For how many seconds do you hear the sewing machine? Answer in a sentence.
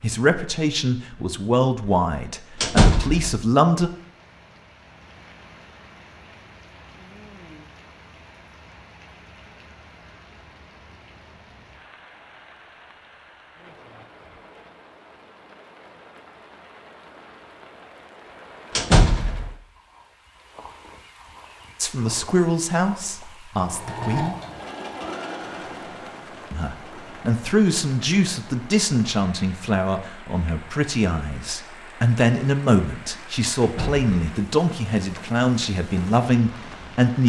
You can hear the sewing machine for 4 seconds altogether.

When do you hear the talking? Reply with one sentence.
You can hear the talking from 0.0 to 3.9 s, from 21.8 to 24.4 s and from 26.5 to 37.2 s.